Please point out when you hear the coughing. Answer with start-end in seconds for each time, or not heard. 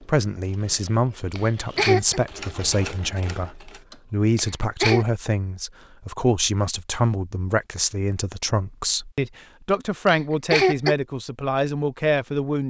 1.4-2.2, 4.3-5.0, 10.1-10.9.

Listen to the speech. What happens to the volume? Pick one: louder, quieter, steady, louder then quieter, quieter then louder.
steady.